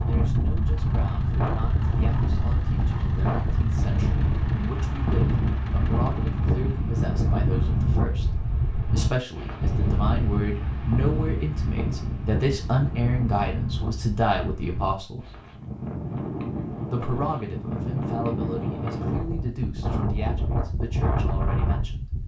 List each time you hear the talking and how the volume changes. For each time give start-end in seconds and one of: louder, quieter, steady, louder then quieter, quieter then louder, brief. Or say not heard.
0.1-15.2 louder
16.9-22.2 quieter.